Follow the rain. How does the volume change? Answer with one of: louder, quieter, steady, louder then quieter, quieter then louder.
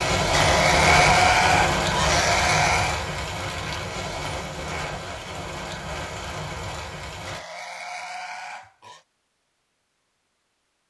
quieter.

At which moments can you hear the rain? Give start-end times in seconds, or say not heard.
0.0-7.4.